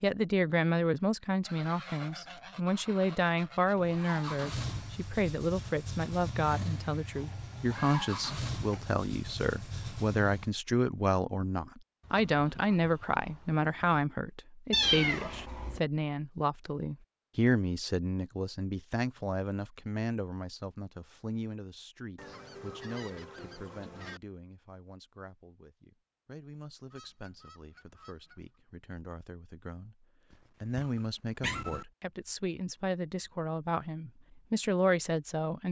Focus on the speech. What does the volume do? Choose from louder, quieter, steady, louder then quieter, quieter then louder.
quieter then louder.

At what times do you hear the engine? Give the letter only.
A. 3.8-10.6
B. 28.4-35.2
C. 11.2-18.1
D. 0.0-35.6
A.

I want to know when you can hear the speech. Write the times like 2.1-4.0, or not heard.
0.0-35.6.